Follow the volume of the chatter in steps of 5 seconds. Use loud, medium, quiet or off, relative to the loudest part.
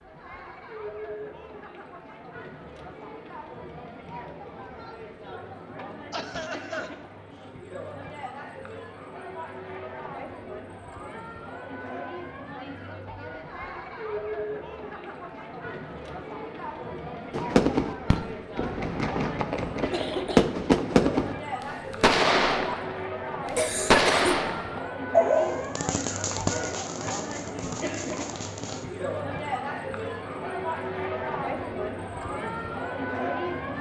medium, medium, medium, medium, loud, loud, loud.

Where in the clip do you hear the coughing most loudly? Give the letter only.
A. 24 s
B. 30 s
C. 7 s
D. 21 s
A.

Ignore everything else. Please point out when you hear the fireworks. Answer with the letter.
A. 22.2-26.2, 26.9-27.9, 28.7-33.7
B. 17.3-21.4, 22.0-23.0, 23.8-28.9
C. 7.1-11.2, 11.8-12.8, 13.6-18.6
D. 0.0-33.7
B.